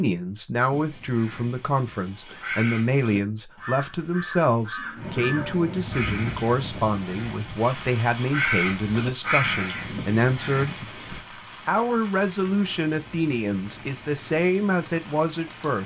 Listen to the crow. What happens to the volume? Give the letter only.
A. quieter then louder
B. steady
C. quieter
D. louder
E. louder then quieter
D.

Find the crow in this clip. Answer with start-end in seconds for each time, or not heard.
0.7-11.2.